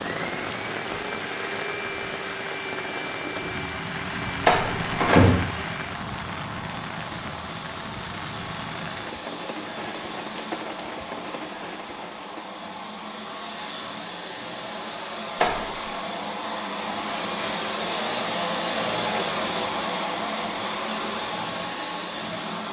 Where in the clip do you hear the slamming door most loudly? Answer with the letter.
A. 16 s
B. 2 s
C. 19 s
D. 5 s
D.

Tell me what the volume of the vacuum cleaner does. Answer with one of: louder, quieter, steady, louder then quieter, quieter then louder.
louder.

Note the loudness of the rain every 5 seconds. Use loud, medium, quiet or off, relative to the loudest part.
loud, loud, loud, off, off.